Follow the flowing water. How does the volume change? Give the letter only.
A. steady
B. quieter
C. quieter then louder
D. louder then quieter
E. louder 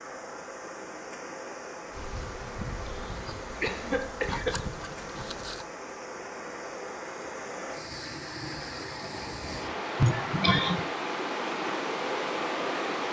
E.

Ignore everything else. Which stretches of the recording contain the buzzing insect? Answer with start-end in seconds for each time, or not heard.
1.9-5.7.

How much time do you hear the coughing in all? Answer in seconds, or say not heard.
3 s.